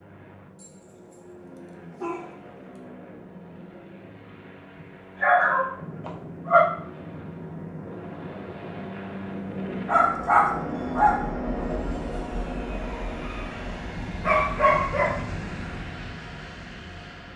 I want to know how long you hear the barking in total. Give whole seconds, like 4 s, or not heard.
5 s.